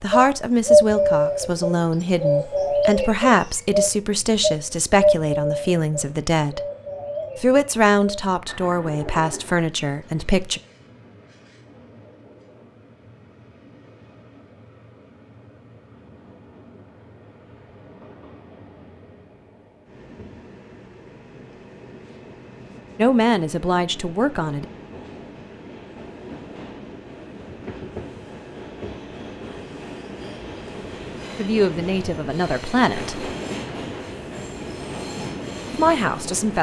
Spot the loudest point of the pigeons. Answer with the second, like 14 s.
1 s.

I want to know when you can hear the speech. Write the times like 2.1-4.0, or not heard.
0.0-6.6, 7.4-10.6, 22.9-24.6, 31.4-33.3, 35.7-36.5.